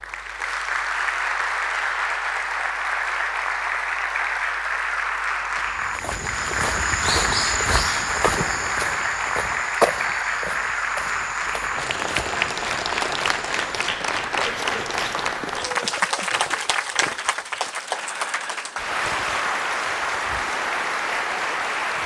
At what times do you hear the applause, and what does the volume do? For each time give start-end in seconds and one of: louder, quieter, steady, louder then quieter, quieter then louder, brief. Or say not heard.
0.0-22.0 steady.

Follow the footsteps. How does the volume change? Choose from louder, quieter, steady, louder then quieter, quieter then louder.
quieter.